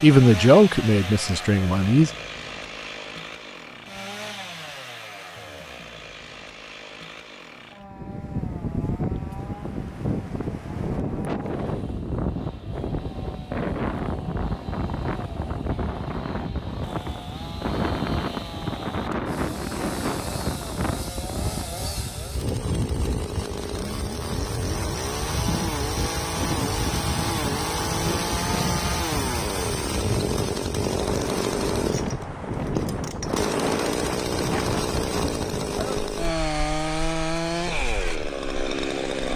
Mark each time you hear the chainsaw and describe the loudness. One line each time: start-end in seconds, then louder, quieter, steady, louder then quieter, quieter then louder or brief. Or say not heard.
0.0-39.3 quieter then louder.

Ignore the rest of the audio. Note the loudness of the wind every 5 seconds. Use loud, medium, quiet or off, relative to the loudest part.
off, loud, loud, loud, loud, loud, loud, medium.